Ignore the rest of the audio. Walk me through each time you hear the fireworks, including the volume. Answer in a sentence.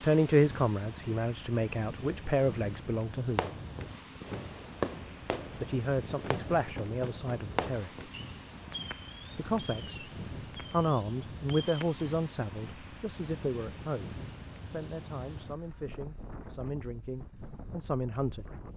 You can hear the fireworks from 3.3 to 12.1 s, getting quieter.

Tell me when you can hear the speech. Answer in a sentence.
The speech can be heard from 0.0 to 3.5 s, from 5.0 to 7.9 s, from 9.3 to 10.1 s and from 10.7 to 18.4 s.